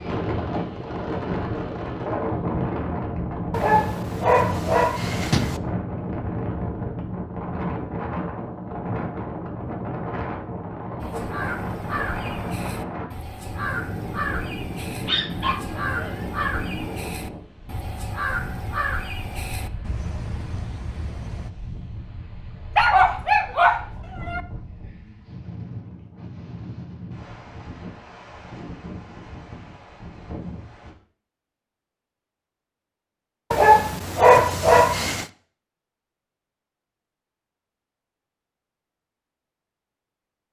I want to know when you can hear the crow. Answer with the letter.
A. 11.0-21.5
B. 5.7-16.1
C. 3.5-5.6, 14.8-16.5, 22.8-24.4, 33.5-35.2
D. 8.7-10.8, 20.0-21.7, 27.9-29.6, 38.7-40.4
A.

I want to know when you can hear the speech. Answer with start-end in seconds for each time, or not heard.
not heard.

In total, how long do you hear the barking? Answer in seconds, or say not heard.
7 s.